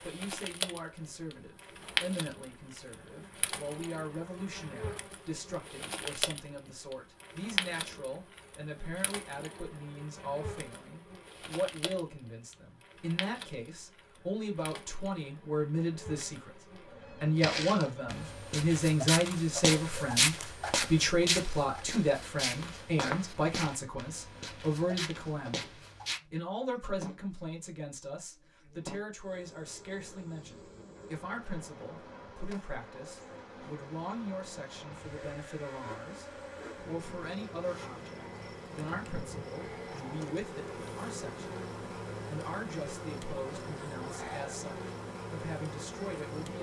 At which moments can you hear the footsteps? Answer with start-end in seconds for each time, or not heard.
17.4-26.2.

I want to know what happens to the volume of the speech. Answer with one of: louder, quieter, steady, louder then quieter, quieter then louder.
louder then quieter.